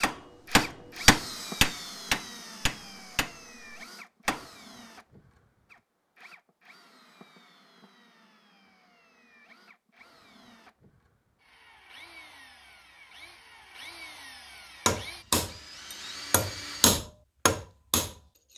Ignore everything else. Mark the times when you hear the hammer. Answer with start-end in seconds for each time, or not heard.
0.0-4.5, 14.8-18.1.